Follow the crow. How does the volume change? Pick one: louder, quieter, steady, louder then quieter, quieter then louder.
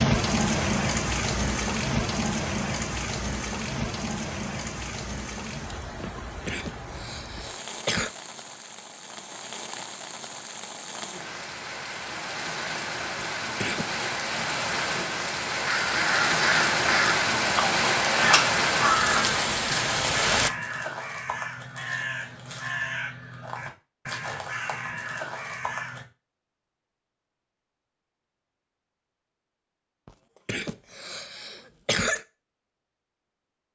quieter.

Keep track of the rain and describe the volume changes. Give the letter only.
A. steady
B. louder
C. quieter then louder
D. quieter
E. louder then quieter
C.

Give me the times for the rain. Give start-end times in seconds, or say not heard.
0.0-20.5.